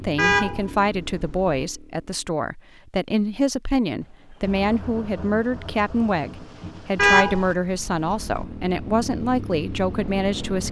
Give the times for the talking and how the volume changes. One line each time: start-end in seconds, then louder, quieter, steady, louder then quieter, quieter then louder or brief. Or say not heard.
0.0-10.6 steady.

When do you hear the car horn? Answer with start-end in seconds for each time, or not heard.
0.1-1.5, 7.0-8.4.